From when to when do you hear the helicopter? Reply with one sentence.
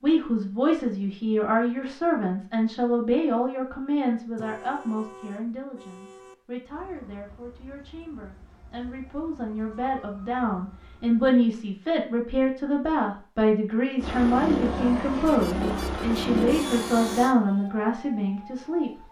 You can hear the helicopter from 14.0 to 17.4 s.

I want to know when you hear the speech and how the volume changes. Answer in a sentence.
You can hear the speech from 0.0 to 19.0 s, getting quieter then louder.